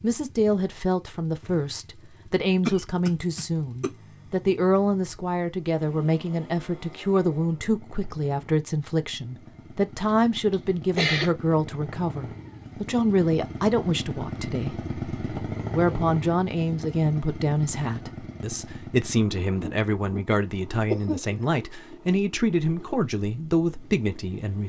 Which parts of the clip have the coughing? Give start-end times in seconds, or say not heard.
2.6-3.9, 10.5-11.3, 20.9-21.4.